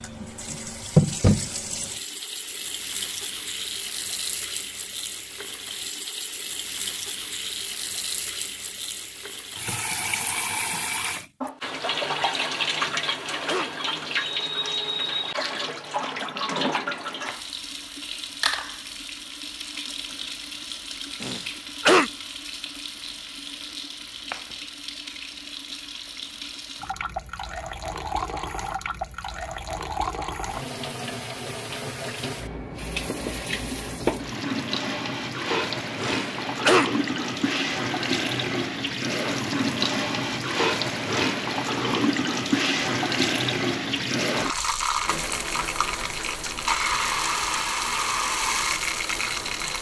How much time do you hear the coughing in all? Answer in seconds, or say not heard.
3 s.